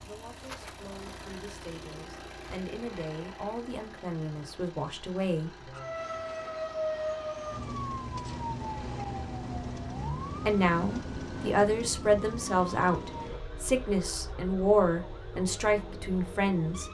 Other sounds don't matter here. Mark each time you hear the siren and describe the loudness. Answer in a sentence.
The siren can be heard from 5.7 to 16.8 s, getting quieter.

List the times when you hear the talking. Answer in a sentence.
You can hear the talking from 0.0 to 5.7 s and from 10.4 to 16.8 s.